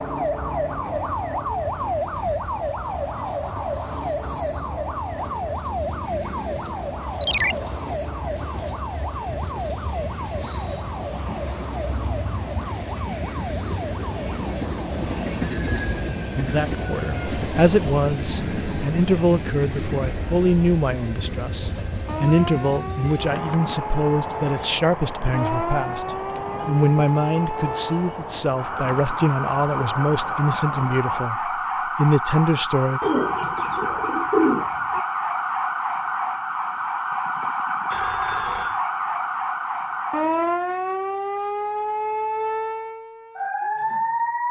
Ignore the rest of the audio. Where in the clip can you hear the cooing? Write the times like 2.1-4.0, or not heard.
33.0-35.0.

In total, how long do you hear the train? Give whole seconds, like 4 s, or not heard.
31 s.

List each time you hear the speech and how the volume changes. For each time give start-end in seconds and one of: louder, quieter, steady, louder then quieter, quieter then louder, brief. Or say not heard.
16.4-33.0 steady.